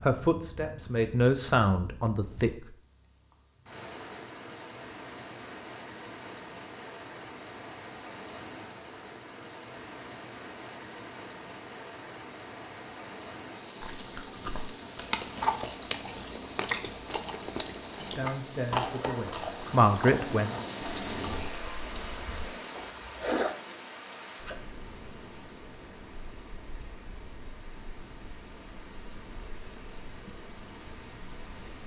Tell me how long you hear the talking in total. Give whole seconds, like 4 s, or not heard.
5 s.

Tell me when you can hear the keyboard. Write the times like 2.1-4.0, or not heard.
not heard.